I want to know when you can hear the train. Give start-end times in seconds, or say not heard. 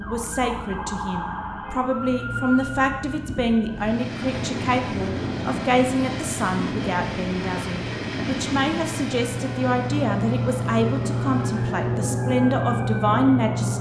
3.7-12.1.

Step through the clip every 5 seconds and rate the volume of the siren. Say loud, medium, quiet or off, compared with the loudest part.
medium, medium, loud.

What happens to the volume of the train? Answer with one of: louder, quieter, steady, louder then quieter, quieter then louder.
quieter.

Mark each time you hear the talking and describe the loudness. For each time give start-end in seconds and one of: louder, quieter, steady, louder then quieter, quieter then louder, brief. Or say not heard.
0.0-13.7 steady.